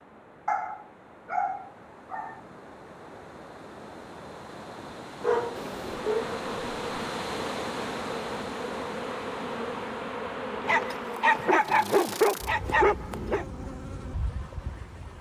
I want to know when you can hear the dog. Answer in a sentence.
You can hear the dog from 0.5 to 2.4 s, from 5.2 to 6.3 s and from 10.6 to 13.4 s.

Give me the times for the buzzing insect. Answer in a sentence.
The buzzing insect can be heard from 5.5 to 15.1 s.